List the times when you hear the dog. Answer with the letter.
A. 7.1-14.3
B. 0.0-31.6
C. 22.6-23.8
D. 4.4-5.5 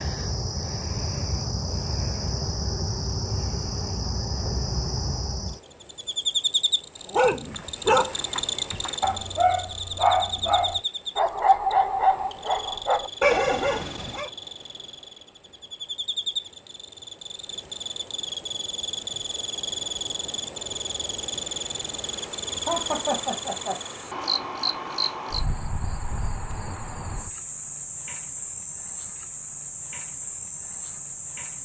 A.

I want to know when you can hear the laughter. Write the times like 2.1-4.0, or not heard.
22.6-23.8.